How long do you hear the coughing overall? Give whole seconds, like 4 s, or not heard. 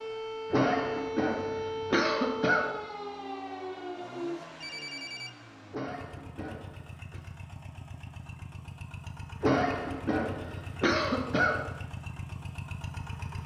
6 s.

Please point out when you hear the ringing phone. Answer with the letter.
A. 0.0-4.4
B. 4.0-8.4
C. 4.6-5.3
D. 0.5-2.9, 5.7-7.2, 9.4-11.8
C.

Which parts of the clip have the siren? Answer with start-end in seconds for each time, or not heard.
0.0-4.4.